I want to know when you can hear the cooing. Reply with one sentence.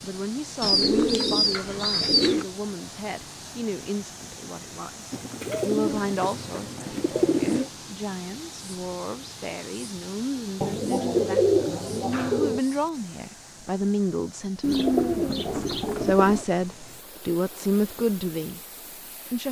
The cooing can be heard from 0.6 to 2.5 s, from 5.1 to 7.7 s, from 10.6 to 12.6 s and from 14.6 to 16.4 s.